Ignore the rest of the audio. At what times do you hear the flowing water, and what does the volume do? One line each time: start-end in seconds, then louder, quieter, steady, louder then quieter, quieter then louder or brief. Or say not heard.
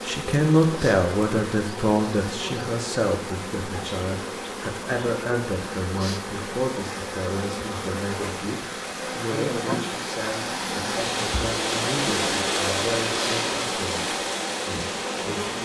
0.0-15.5 louder.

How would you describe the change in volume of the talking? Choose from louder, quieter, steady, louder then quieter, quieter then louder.
quieter.